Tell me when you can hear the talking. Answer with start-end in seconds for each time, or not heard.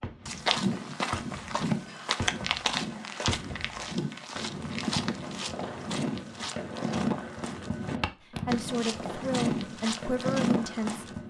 8.3-11.1.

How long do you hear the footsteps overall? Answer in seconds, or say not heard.
11 s.